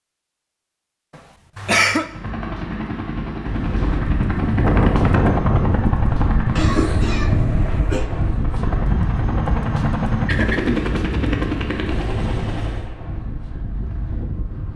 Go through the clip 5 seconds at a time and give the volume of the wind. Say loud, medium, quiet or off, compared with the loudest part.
loud, loud, medium.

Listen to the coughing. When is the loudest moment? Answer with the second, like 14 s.
2 s.